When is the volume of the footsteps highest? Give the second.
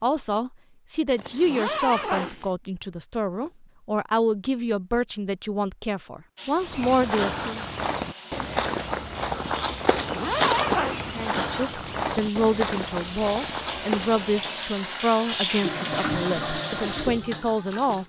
11 s.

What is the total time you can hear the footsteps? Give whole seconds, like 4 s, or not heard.
8 s.